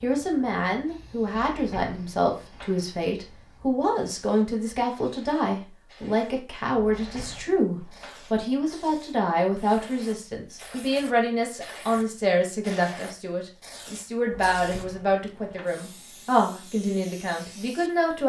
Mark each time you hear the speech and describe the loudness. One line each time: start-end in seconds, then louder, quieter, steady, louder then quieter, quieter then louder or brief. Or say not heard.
0.0-18.2 steady.